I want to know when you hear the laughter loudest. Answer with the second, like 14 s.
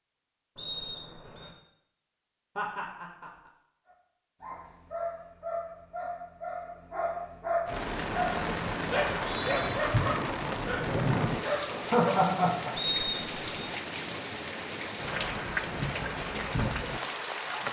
12 s.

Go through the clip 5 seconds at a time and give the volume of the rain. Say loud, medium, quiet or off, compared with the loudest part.
off, loud, loud, loud.